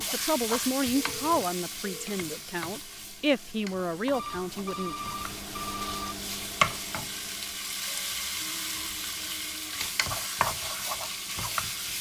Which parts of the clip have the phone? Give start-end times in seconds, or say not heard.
0.9-2.1, 4.1-6.2, 8.3-9.8.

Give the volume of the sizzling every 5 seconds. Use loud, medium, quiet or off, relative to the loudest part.
medium, loud, loud.